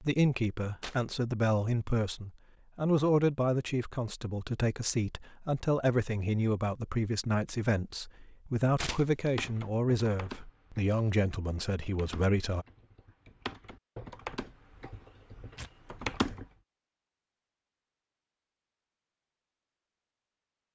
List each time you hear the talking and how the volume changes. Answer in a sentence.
You can hear the talking from 0.0 to 12.7 s, at a steady volume.